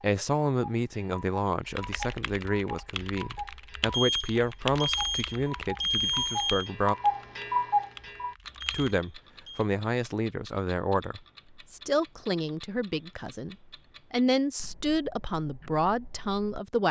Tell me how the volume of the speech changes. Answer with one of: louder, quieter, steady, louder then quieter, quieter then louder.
steady.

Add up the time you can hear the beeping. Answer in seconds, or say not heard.
4 s.